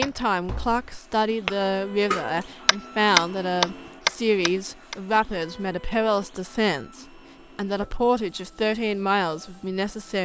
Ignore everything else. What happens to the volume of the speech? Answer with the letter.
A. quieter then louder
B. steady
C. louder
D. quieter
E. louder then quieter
B.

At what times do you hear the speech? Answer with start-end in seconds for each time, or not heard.
0.0-10.2.